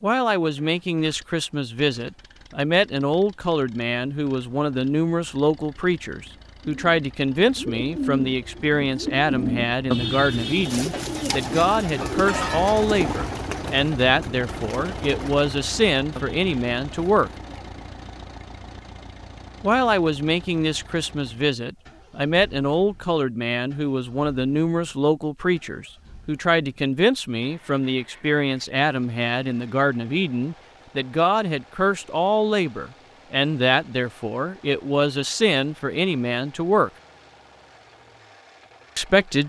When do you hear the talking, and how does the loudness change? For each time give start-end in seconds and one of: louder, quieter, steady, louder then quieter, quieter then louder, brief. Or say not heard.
0.0-17.3 steady
19.6-36.9 steady
39.0-39.4 brief.